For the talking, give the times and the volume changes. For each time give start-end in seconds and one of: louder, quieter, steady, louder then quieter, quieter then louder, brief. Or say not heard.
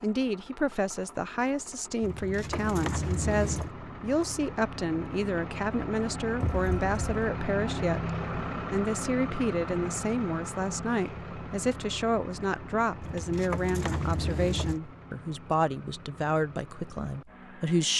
0.0-17.9 steady.